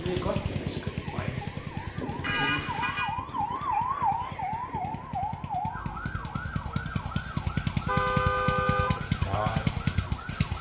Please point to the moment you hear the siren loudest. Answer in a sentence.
The volume of the siren peaks at 4 seconds.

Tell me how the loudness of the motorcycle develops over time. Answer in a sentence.
The volume of the motorcycle goes down, then up.